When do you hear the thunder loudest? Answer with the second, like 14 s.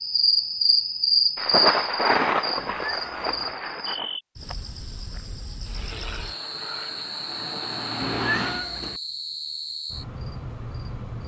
2 s.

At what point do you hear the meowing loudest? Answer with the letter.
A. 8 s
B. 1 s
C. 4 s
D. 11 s
A.